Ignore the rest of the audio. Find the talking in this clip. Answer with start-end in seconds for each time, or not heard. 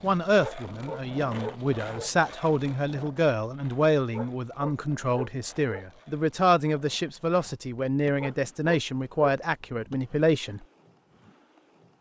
0.0-10.6.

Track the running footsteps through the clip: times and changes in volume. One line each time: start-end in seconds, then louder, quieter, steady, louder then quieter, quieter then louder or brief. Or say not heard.
not heard.